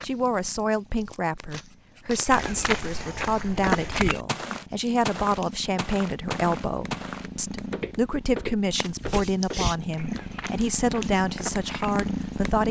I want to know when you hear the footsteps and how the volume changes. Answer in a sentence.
You can hear the footsteps from 2.2 to 11.9 s, getting quieter.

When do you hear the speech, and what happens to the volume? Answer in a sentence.
The speech can be heard from 0.0 to 12.6 s, at a steady volume.